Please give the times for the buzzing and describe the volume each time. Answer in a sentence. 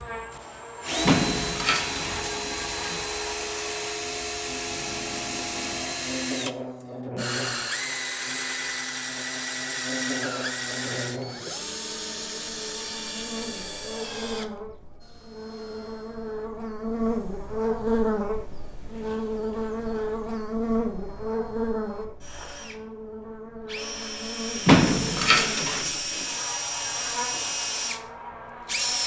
The buzzing can be heard from 0.0 to 29.0 s, getting louder then quieter.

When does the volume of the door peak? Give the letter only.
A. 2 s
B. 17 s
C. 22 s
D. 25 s
D.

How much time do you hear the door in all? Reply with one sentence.
You can hear the door for 4 seconds altogether.